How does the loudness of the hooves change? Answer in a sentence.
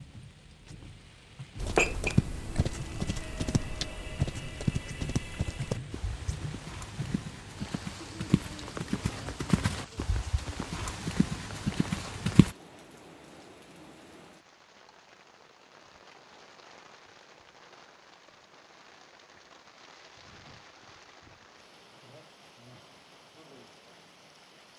The volume of the hooves goes down, then up.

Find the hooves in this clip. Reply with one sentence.
The hooves can be heard from 1.6 to 12.6 s.